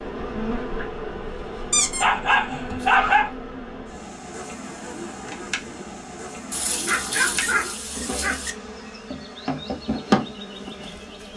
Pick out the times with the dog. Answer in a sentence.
The dog can be heard from 1.7 to 3.3 s and from 6.5 to 8.6 s.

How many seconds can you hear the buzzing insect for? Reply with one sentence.
You can hear the buzzing insect for 11 seconds altogether.